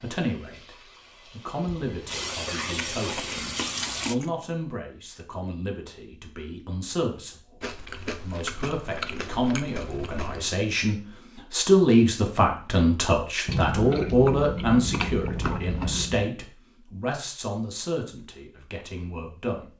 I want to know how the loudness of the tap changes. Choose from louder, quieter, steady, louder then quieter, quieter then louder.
louder.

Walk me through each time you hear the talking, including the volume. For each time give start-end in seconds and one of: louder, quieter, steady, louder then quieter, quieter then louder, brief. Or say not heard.
0.0-19.7 louder then quieter.